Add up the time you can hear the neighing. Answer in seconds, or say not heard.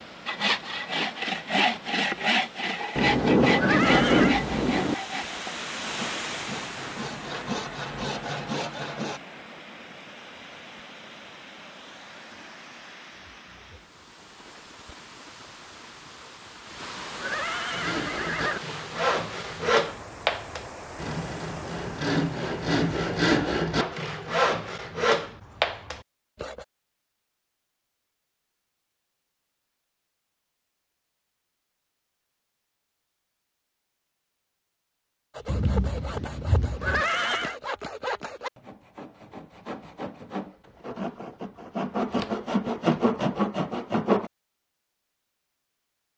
3 s.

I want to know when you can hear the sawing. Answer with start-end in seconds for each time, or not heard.
0.2-9.2, 17.7-26.6, 35.3-44.3.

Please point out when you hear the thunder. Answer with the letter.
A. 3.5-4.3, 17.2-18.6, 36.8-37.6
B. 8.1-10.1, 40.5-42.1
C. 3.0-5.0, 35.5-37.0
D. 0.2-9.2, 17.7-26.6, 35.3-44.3
C.